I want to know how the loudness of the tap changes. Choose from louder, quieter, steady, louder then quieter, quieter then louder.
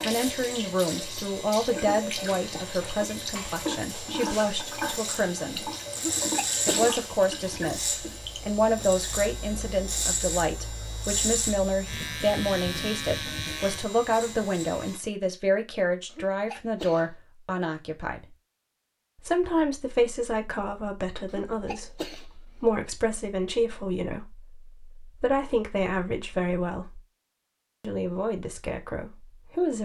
steady.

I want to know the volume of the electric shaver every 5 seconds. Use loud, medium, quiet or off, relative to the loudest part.
medium, loud, loud, off, off, off.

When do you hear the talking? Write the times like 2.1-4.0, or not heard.
0.0-5.7, 6.7-18.2, 19.2-27.1, 27.8-29.7.